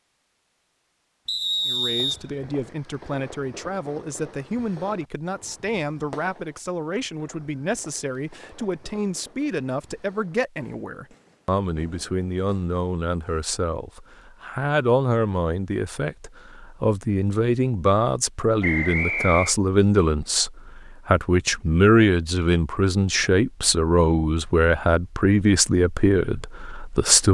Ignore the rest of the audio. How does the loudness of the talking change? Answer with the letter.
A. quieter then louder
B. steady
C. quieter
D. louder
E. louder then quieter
D.